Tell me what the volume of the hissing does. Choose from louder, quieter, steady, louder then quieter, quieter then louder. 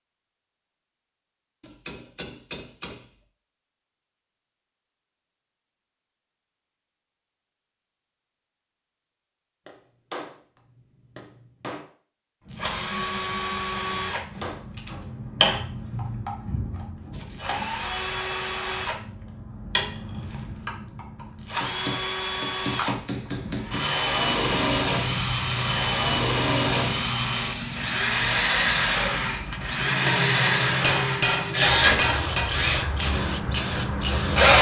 steady.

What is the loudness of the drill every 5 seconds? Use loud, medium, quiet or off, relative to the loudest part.
off, off, medium, medium, medium, loud, loud.